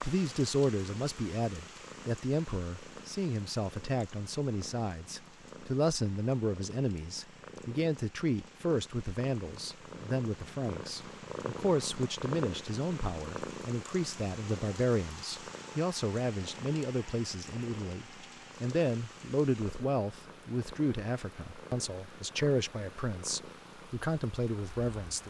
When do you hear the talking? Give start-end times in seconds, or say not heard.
0.0-25.2.